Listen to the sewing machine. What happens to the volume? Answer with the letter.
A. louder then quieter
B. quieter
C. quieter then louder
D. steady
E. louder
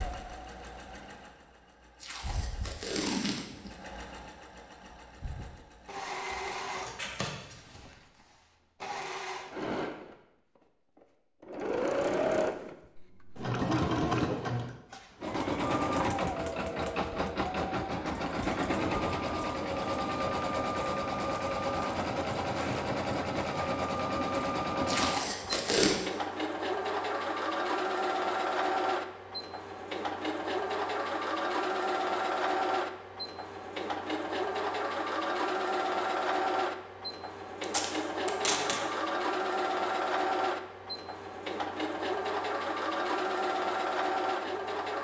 E.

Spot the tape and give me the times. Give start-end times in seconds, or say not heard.
2.0-3.7, 24.9-25.9, 37.6-38.8.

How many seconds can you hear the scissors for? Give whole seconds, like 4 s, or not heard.
2 s.